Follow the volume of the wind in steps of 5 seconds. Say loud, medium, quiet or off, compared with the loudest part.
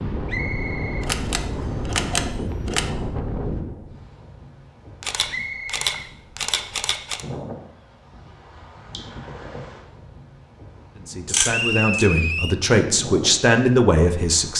loud, medium, medium.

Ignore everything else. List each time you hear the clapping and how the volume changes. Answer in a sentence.
The clapping can't be heard in this clip.